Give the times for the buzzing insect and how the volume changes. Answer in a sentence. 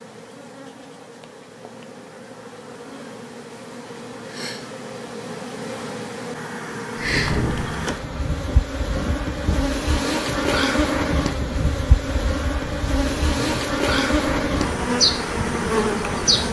The buzzing insect can be heard from 0.0 to 16.4 s, getting louder.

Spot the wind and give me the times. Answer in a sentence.
The wind can be heard from 7.0 to 16.4 s.